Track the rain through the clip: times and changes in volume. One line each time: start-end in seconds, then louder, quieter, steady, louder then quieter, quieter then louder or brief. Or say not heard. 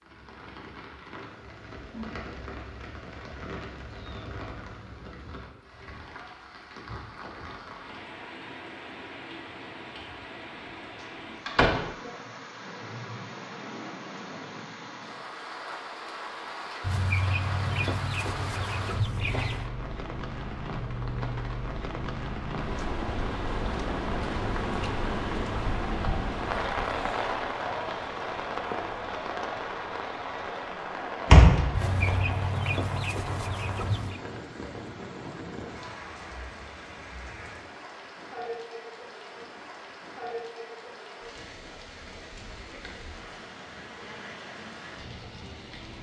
0.0-45.9 louder then quieter.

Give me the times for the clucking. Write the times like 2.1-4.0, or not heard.
16.8-19.7, 31.7-34.2.